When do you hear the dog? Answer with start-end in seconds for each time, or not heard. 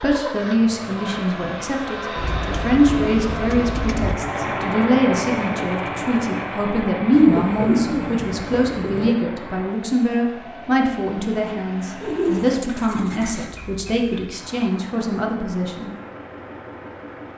not heard.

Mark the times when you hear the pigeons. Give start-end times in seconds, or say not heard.
2.1-4.2, 7.1-9.2, 12.0-13.5.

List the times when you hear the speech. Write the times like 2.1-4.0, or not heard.
0.0-15.9.